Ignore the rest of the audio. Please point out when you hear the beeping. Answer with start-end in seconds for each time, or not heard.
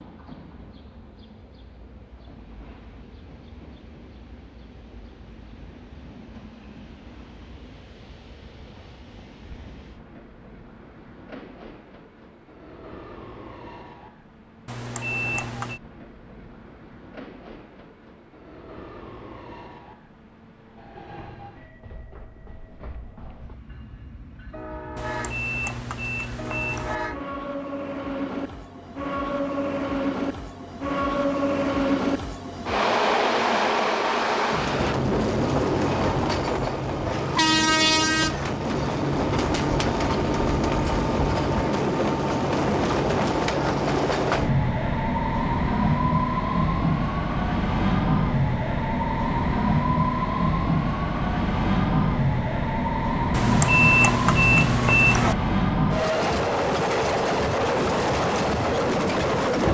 14.7-15.8, 24.9-27.0, 53.3-55.4.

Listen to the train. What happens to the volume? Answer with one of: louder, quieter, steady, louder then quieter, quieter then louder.
louder.